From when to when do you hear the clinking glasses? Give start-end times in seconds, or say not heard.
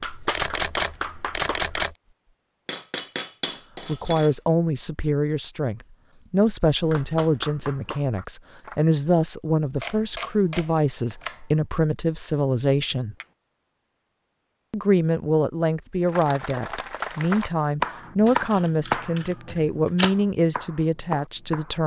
2.6-4.3.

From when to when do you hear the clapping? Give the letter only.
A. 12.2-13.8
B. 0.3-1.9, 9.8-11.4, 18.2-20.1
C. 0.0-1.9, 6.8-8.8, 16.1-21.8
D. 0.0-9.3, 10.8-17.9
C.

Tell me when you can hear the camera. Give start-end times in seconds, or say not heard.
0.3-1.9, 9.8-11.4, 18.2-20.1.